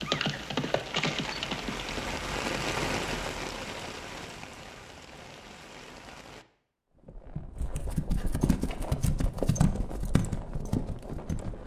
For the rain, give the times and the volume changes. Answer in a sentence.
The rain can be heard from 0.0 to 6.5 s, getting louder then quieter.